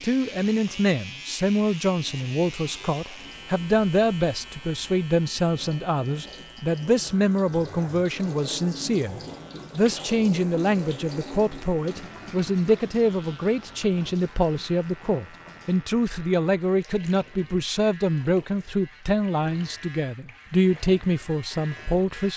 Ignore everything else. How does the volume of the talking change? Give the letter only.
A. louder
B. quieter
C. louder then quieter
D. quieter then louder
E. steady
E.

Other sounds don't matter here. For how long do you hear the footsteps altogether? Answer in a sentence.
You can't hear the footsteps here.